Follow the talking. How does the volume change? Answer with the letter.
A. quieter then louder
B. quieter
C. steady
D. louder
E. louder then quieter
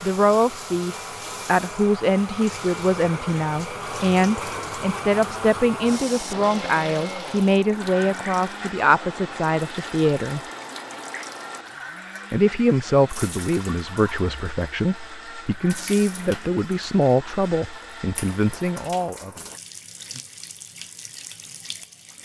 C.